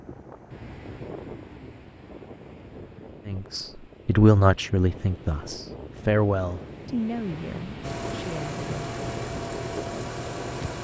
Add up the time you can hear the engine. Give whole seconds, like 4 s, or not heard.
3 s.